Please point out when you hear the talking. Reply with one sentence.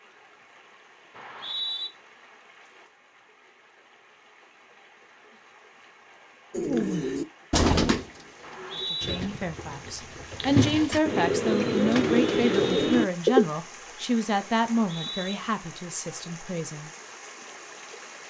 You can hear the talking from 8.8 to 16.9 s.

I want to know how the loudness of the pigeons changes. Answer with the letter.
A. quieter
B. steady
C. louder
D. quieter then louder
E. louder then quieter
D.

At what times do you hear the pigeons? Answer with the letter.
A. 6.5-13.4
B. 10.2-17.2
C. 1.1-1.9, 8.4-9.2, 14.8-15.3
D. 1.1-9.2
A.